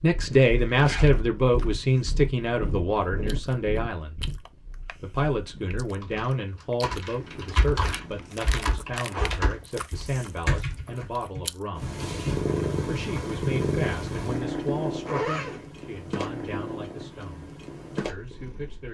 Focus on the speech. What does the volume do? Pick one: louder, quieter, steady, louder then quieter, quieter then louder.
quieter.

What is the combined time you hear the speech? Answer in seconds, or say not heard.
17 s.